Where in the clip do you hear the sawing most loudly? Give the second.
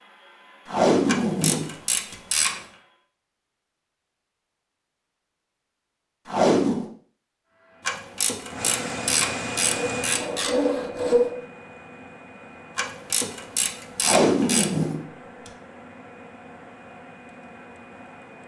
11 s.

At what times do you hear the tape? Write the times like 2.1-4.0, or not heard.
0.7-2.1, 6.2-6.8, 14.0-15.5.